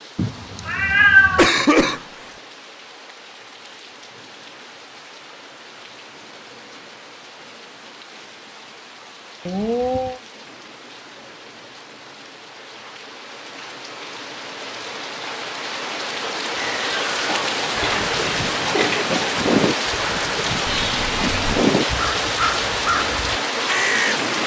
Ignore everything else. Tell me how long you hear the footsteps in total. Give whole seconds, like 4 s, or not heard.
not heard.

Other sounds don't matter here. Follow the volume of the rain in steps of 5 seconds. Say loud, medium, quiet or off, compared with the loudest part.
quiet, quiet, quiet, loud, loud.